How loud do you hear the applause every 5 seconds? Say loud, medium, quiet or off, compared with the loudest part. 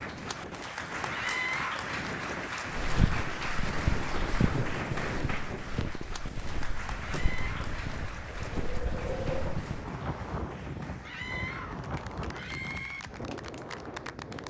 loud, medium, medium.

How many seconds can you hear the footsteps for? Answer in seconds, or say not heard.
7 s.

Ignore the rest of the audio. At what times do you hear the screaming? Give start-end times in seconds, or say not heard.
1.1-1.9, 7.0-7.7, 11.0-13.1.